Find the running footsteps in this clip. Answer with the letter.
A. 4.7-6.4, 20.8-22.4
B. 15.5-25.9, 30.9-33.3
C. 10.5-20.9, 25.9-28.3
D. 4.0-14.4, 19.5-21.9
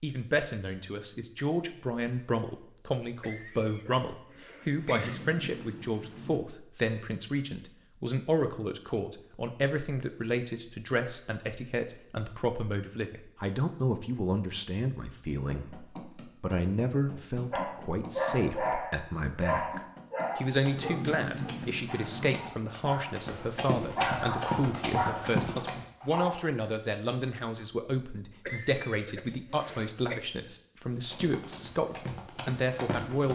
B.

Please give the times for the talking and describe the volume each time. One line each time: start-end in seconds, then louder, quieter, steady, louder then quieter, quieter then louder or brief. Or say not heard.
0.0-33.3 steady.